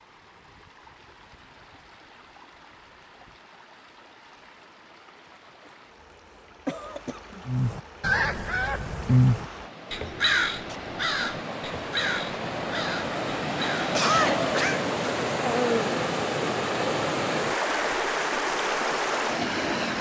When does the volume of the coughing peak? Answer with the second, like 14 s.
14 s.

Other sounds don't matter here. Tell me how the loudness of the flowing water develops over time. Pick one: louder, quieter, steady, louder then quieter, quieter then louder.
louder.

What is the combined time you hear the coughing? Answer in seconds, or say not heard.
2 s.